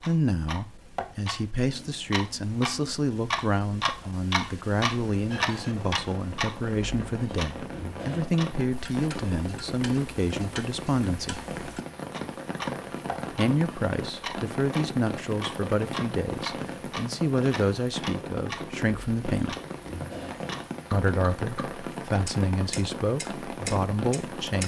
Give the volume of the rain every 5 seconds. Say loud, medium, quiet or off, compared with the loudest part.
off, loud, loud, loud, loud.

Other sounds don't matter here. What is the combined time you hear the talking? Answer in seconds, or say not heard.
21 s.